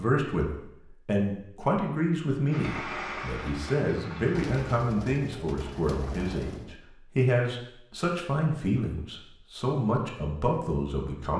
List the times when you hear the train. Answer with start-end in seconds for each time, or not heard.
2.5-4.8.